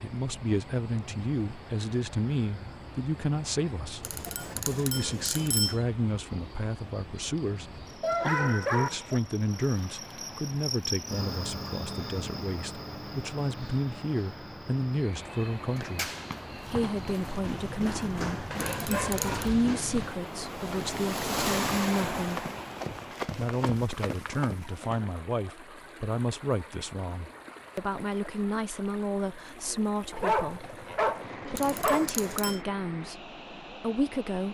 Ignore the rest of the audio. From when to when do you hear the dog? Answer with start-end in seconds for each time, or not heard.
8.0-9.2, 18.5-20.1, 30.1-32.1.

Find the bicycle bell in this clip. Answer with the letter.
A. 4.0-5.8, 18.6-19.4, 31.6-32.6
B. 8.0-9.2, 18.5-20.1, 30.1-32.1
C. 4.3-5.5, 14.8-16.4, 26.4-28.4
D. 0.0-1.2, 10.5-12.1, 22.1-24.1
A.